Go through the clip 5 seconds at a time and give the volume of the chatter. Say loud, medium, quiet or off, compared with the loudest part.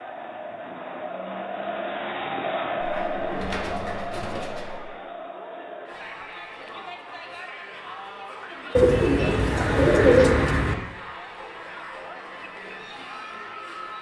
loud, medium, medium.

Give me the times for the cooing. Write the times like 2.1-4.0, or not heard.
2.8-4.8, 8.8-10.8.